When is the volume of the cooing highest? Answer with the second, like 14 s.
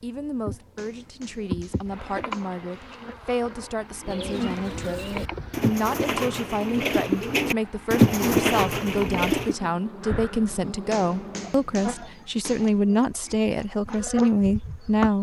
8 s.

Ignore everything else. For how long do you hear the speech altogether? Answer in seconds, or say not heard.
15 s.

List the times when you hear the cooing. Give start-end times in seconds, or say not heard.
4.0-9.6.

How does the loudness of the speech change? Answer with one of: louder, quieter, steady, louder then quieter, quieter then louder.
louder.